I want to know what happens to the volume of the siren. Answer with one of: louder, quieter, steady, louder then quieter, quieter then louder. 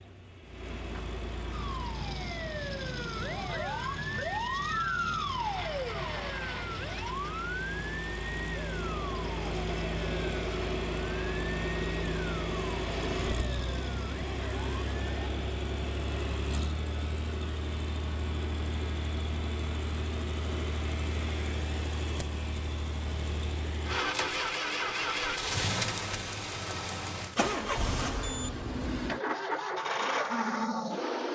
quieter.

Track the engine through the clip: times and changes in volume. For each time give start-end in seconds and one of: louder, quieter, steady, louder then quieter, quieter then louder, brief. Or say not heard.
0.0-31.2 louder.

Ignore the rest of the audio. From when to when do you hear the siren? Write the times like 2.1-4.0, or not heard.
1.5-15.3.